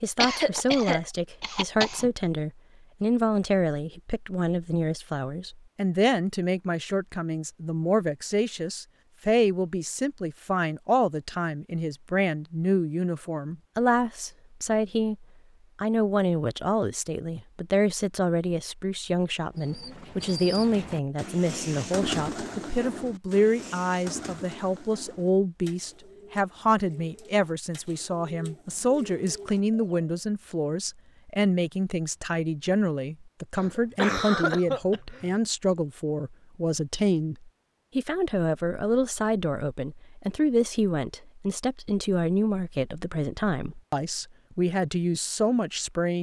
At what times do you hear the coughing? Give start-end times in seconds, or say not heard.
0.2-2.1, 33.5-35.4.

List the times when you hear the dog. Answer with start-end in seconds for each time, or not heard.
not heard.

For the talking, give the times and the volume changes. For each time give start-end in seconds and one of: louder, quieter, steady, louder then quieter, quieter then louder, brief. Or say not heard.
0.0-46.1 steady.